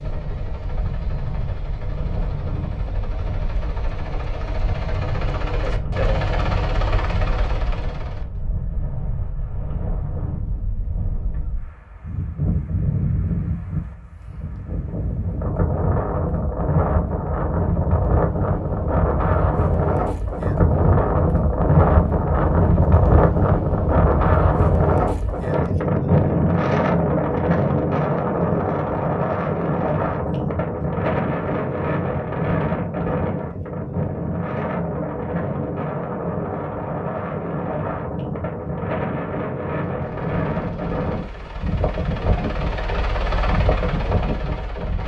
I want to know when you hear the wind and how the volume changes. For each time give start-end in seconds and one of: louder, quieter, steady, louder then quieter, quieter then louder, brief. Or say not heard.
0.0-45.0 louder then quieter.